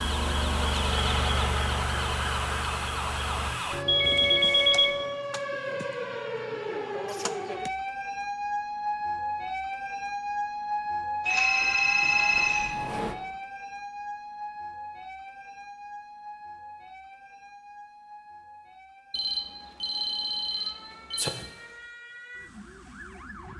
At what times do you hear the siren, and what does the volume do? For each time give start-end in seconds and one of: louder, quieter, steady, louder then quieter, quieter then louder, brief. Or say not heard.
0.0-23.5 quieter.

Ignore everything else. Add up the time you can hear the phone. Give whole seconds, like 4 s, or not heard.
5 s.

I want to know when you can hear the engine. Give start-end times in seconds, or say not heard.
0.0-3.5.